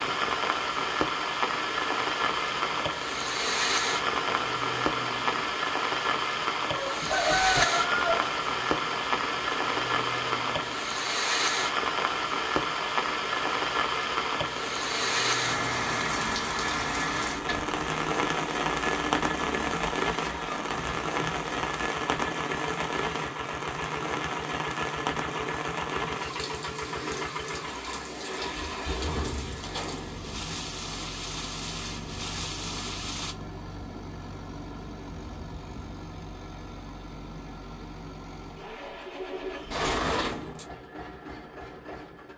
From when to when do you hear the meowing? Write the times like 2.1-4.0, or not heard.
not heard.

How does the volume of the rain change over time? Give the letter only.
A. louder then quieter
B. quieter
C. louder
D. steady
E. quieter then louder
B.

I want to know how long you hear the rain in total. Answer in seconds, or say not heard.
33 s.